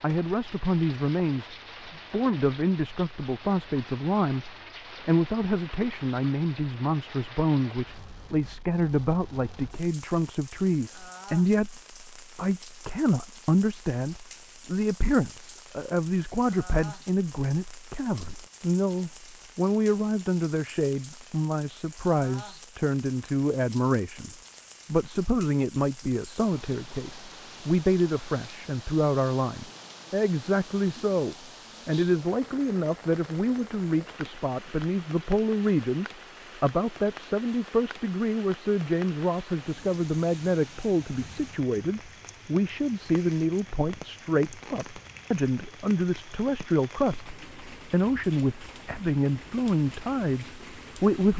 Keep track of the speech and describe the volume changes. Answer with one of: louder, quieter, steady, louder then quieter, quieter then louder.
steady.